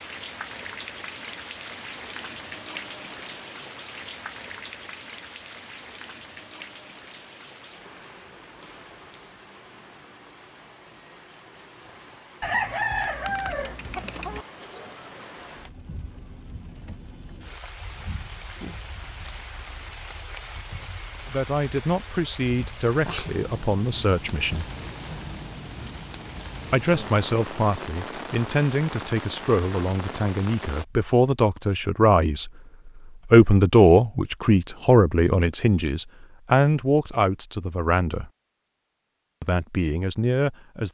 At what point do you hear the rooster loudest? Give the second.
13 s.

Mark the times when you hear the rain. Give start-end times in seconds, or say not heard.
0.0-30.9.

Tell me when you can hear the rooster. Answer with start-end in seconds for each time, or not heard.
12.4-14.4.